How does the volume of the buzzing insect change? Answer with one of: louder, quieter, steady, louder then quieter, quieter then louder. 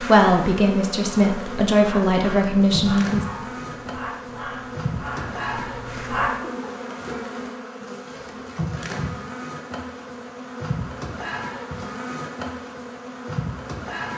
steady.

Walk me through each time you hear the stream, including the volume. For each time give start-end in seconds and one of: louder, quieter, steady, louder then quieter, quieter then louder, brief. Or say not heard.
not heard.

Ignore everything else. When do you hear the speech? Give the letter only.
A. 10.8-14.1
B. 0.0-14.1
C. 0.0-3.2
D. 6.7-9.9
C.